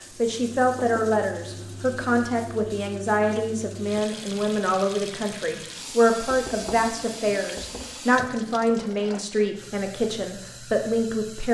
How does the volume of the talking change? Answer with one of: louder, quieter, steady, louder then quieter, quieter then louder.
steady.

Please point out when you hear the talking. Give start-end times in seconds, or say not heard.
0.1-11.4.